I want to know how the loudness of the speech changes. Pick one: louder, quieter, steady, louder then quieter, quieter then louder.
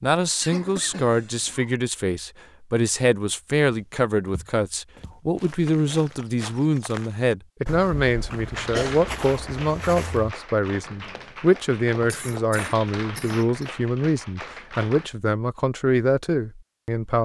steady.